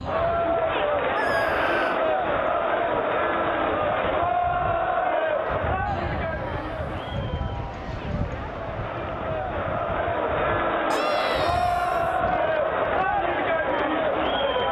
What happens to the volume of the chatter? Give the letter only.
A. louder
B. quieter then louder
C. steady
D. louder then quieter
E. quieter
B.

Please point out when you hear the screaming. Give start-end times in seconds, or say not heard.
1.1-2.0, 6.2-7.2, 10.9-12.2.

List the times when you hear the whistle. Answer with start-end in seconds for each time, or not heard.
not heard.